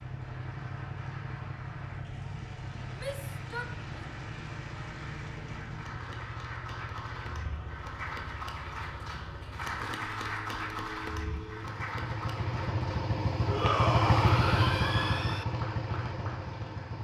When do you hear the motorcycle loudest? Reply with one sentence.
The loudest moment of the motorcycle is at 14 seconds.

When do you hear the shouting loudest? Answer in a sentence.
The loudest moment of the shouting is at 14 seconds.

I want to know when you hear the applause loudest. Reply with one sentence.
The loudest moment of the applause is at 10 seconds.